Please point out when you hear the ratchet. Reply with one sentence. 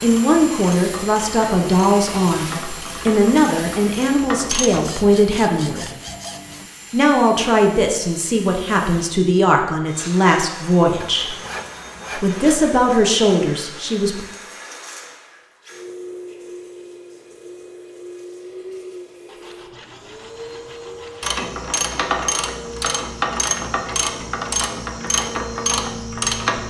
The ratchet can be heard from 0.0 to 4.9 s and from 21.2 to 26.6 s.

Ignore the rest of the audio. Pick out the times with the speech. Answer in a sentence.
The speech can be heard from 0.0 to 5.9 s, from 6.9 to 11.3 s and from 12.2 to 14.2 s.